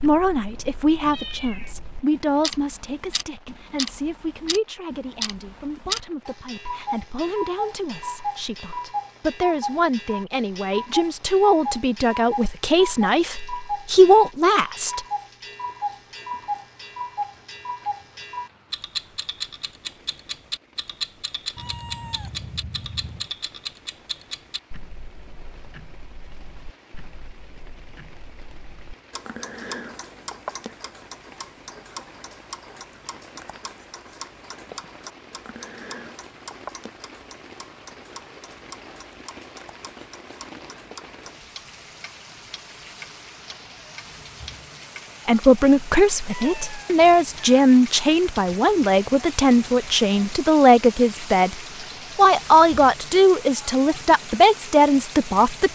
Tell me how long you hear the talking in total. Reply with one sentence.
The talking can be heard for 25 seconds in total.